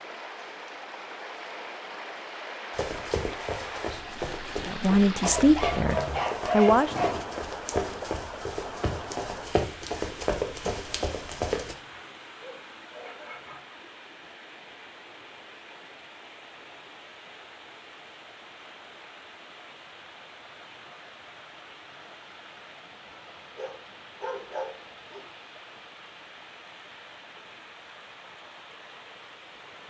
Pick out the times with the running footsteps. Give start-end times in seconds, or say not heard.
2.8-11.8.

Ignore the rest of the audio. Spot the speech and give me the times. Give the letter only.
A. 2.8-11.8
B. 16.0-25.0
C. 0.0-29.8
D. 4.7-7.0
D.